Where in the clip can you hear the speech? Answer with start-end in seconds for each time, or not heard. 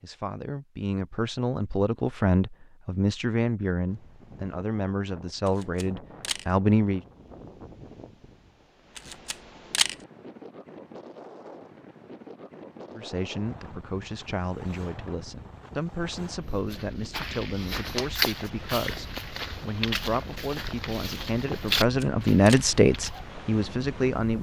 0.0-7.0, 12.9-24.3.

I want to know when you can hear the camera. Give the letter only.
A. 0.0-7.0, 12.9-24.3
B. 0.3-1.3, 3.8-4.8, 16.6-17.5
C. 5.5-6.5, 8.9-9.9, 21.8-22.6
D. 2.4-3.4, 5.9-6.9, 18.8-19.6
C.